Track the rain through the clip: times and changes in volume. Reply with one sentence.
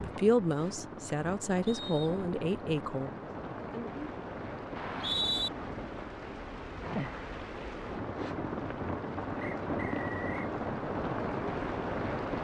The rain can be heard from 0.0 to 12.3 s, getting louder.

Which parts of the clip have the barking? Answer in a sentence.
You can't hear the barking here.